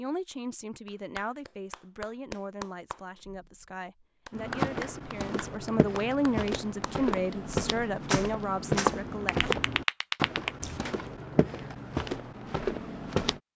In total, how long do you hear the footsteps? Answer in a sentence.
The footsteps can be heard for 9 seconds in total.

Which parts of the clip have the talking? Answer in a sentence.
You can hear the talking from 0.0 to 9.4 s.